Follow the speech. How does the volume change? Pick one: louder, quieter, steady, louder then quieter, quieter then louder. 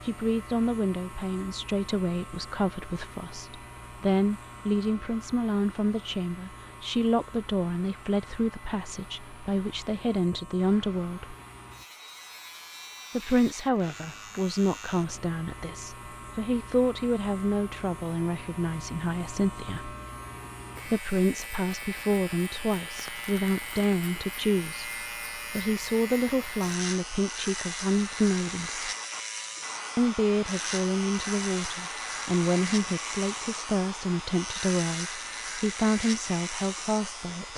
steady.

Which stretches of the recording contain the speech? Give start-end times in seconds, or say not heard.
0.0-11.3, 13.1-19.9, 20.9-28.9, 29.9-37.5.